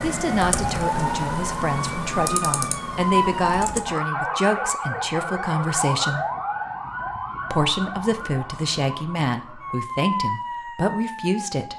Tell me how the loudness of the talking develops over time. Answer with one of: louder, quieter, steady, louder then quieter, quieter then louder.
steady.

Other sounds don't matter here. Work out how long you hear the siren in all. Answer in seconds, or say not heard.
12 s.